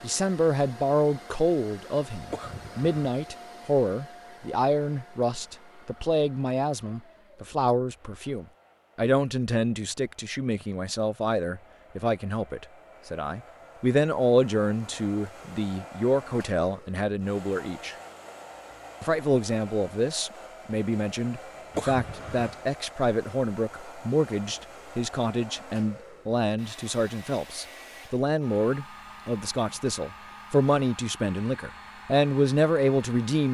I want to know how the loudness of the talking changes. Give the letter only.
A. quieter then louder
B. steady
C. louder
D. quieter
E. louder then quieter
B.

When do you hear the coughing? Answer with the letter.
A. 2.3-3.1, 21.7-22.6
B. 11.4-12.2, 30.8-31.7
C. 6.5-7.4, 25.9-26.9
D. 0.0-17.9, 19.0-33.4
A.